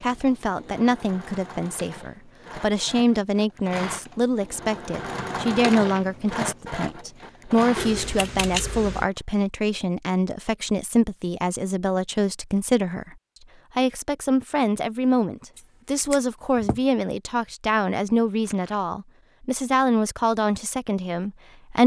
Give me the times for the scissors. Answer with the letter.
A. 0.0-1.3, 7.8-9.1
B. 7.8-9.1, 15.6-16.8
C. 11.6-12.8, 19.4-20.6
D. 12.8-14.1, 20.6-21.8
B.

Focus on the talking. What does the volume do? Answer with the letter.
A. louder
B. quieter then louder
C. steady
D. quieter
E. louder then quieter
C.